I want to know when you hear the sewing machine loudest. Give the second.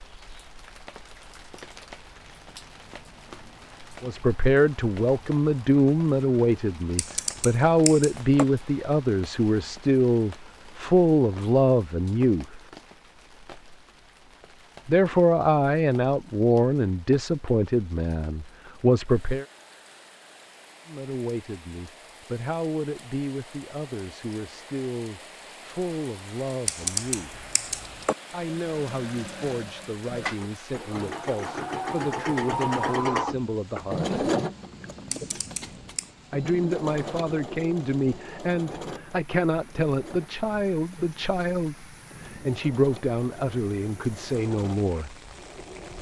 33 s.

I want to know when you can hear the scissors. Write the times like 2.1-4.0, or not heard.
7.0-8.4, 26.6-28.1, 35.1-36.1.